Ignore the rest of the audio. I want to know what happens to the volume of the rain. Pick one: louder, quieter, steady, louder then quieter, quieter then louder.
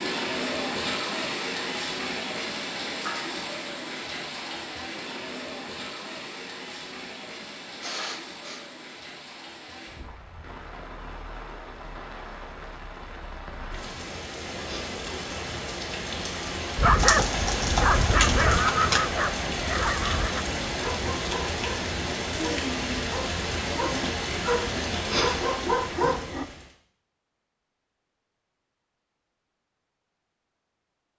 quieter then louder.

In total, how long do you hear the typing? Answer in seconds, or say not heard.
2 s.